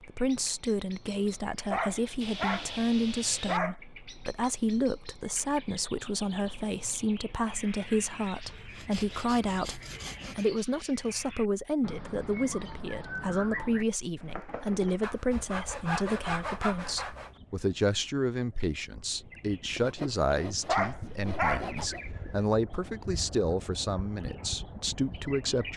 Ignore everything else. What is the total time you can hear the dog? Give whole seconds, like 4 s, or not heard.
5 s.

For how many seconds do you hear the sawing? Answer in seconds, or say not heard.
8 s.